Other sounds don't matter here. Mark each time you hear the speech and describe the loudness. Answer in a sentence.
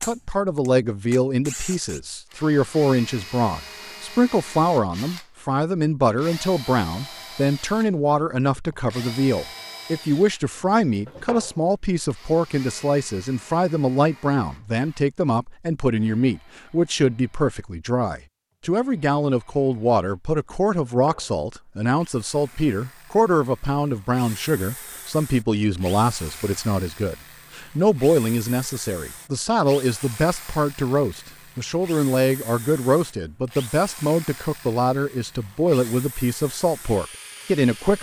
The speech can be heard from 0.0 to 37.9 s, at a steady volume.